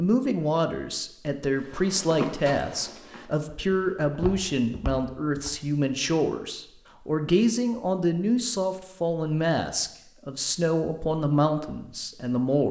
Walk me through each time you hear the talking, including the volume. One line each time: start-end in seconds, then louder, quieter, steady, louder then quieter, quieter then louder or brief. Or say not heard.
0.0-12.6 steady.